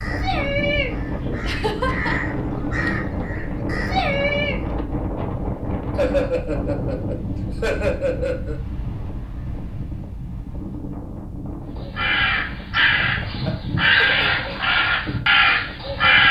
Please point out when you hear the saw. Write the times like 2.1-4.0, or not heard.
not heard.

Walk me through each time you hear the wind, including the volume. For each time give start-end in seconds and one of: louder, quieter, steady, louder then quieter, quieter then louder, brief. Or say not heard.
0.0-16.2 quieter.